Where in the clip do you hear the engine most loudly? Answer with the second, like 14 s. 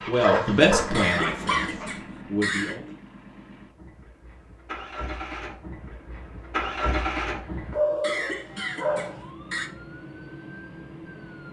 7 s.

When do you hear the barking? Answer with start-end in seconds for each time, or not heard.
0.2-1.9, 7.7-9.2.